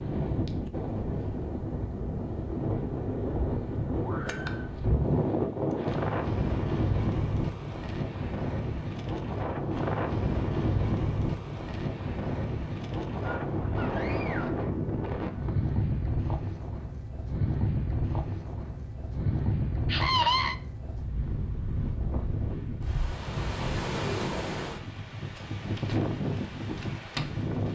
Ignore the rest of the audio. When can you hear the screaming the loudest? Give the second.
20 s.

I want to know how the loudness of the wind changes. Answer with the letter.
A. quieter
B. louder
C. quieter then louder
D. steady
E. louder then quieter
D.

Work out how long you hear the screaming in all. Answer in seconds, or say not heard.
3 s.